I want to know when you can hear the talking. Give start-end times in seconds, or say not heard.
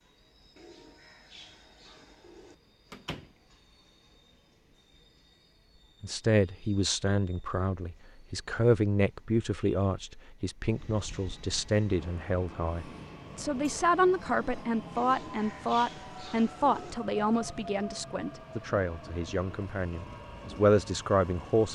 6.0-21.6.